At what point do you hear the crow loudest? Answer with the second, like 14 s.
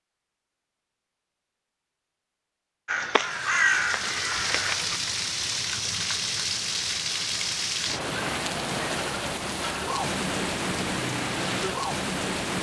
4 s.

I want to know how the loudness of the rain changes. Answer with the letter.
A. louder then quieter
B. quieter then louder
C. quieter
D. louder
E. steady
E.